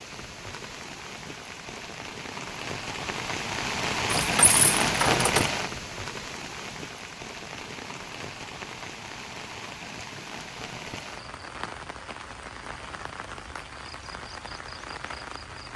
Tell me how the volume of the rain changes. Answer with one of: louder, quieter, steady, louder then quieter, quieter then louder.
louder then quieter.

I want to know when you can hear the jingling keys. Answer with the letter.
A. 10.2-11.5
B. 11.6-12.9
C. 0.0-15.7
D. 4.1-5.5
D.